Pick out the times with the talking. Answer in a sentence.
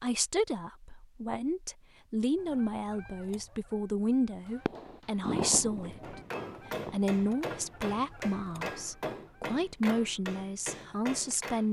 You can hear the talking from 0.0 to 6.2 s and from 6.9 to 11.6 s.